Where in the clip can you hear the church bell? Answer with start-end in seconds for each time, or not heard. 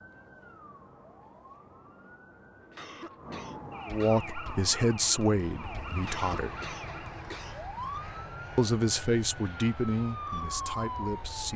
not heard.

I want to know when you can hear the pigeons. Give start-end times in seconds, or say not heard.
not heard.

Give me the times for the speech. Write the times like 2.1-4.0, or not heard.
3.9-6.5, 8.6-11.5.